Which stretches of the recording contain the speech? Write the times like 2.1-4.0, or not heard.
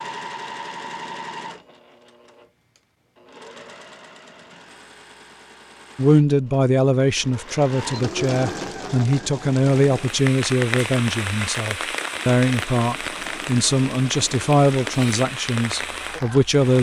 6.0-16.7.